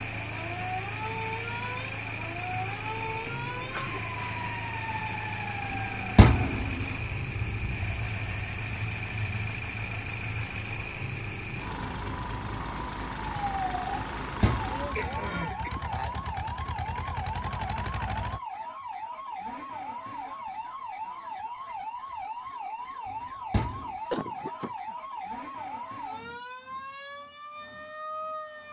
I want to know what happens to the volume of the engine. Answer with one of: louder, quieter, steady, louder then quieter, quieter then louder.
steady.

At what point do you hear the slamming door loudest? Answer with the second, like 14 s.
6 s.